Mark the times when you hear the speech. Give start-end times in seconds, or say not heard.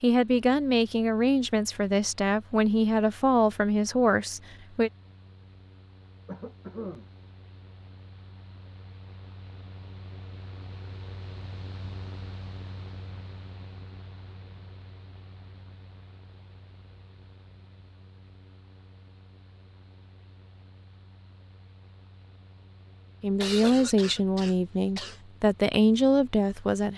0.0-4.9, 23.2-26.9.